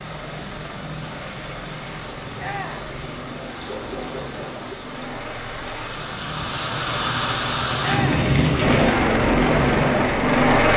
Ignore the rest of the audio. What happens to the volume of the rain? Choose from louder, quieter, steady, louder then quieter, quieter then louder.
louder.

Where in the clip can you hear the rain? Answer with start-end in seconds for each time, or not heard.
0.0-8.9.